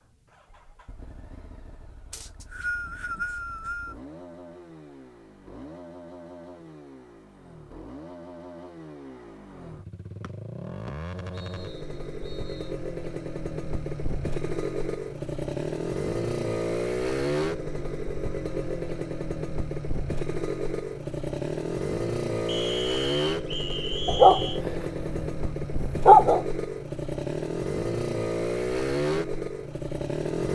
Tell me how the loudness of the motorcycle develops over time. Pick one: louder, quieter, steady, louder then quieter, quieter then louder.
louder.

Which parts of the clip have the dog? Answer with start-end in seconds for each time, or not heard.
24.1-26.4.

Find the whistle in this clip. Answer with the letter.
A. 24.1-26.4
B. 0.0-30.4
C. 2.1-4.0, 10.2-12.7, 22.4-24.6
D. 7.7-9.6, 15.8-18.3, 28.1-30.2
C.